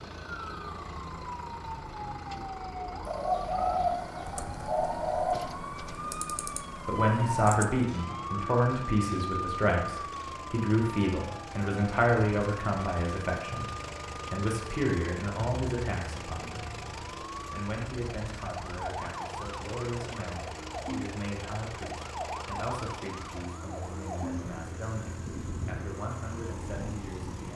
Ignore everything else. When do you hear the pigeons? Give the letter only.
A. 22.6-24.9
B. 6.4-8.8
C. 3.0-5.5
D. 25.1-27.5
C.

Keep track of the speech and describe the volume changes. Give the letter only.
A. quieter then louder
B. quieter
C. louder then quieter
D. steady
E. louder
B.